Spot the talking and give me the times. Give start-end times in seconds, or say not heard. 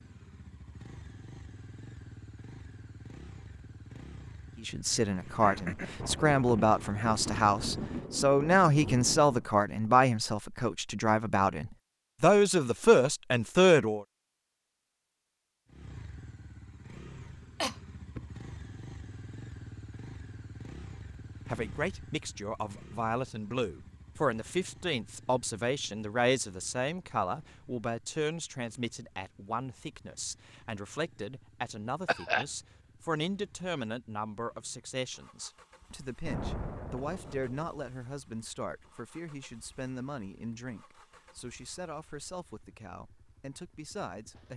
4.6-14.1, 21.4-44.5.